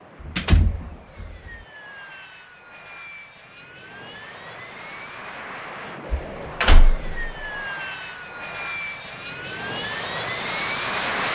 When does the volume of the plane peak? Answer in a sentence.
The volume of the plane peaks at 11 seconds.